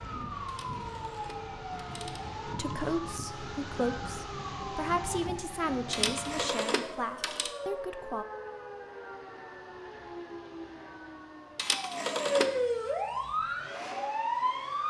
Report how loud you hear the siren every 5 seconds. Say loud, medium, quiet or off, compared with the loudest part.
medium, medium, loud.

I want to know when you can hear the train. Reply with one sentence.
You can hear the train from 0.0 to 6.5 s and from 13.2 to 14.8 s.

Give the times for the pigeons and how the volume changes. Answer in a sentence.
You can't hear the pigeons here.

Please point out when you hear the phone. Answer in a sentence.
You can hear the phone from 0.5 to 2.2 s, from 5.9 to 7.5 s and from 11.6 to 12.6 s.